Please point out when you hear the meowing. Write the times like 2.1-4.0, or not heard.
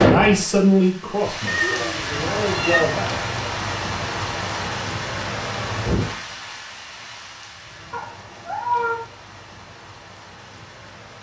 1.4-2.9, 7.9-9.0.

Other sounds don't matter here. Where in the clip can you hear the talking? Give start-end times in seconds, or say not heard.
0.0-3.1.